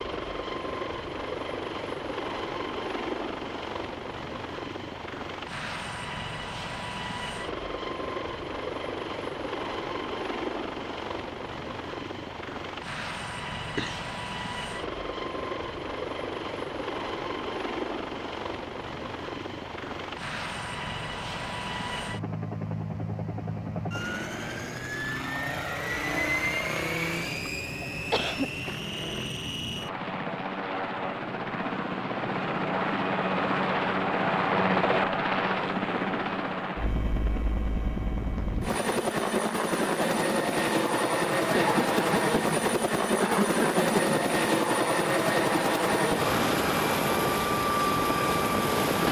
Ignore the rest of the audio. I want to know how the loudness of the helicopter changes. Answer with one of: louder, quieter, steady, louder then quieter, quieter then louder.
louder.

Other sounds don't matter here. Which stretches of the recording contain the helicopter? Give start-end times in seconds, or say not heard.
0.0-49.0.